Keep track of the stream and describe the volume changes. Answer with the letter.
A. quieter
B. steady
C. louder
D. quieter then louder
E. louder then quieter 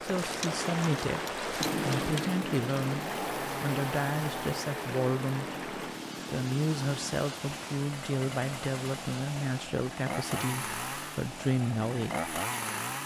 A.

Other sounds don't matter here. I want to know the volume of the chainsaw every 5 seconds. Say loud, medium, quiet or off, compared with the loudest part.
loud, medium, loud.